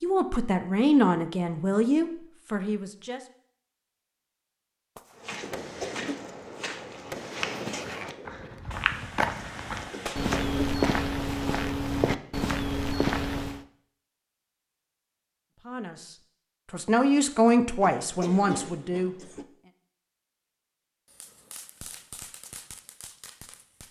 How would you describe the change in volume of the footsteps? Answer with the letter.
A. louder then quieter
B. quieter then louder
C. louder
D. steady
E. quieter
C.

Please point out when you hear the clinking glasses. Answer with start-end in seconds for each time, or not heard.
not heard.